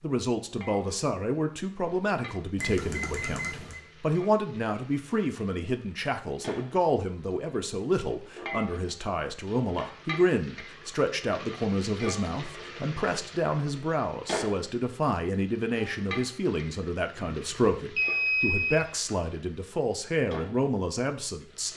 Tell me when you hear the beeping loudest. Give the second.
18 s.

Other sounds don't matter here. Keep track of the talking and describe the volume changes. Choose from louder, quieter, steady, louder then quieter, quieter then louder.
steady.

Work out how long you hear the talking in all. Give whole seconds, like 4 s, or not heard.
22 s.